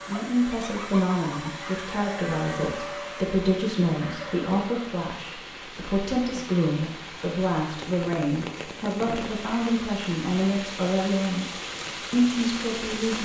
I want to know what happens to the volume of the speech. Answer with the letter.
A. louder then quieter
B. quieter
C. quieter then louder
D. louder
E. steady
E.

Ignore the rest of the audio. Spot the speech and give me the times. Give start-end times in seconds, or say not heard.
0.1-13.2.